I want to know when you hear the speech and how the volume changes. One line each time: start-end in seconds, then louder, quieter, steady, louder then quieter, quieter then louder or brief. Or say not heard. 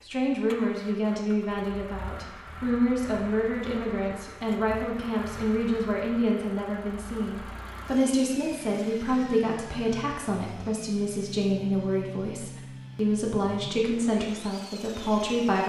0.1-15.6 steady.